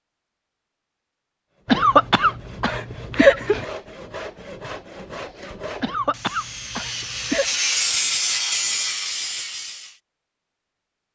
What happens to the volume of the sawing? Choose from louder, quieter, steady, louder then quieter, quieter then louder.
louder.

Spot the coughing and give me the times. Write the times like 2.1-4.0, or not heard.
1.6-3.6, 5.8-7.5.